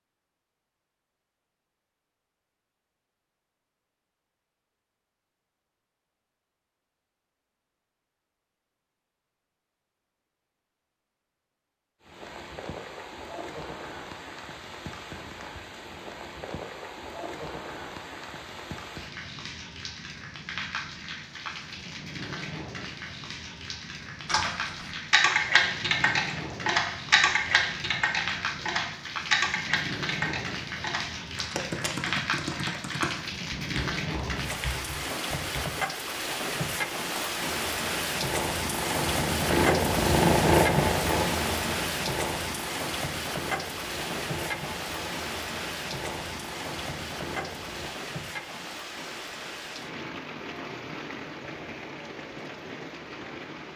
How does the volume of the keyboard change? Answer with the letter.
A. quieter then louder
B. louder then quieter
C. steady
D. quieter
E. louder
D.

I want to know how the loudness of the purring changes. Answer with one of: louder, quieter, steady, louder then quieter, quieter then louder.
louder then quieter.